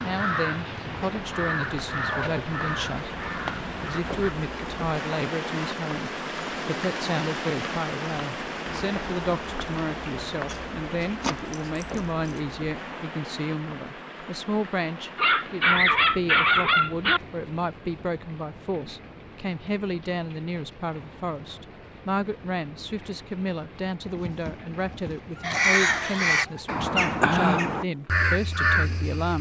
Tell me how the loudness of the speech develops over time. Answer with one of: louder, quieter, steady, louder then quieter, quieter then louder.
steady.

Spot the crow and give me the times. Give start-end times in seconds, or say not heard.
0.0-4.3, 25.4-29.3.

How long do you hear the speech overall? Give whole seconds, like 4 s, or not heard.
29 s.